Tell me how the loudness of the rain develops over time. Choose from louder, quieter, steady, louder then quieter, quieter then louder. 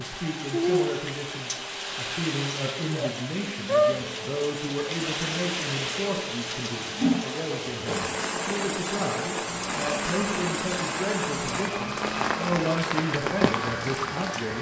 steady.